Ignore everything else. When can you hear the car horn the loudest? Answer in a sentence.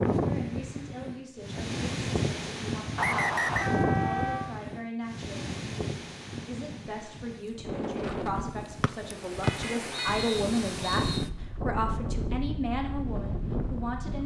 The volume of the car horn peaks at 4 seconds.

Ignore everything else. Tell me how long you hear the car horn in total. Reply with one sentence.
You can hear the car horn for 2 seconds altogether.